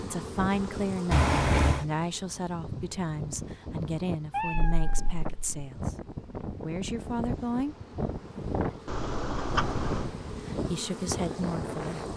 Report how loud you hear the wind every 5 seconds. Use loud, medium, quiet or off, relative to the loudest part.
medium, loud, loud.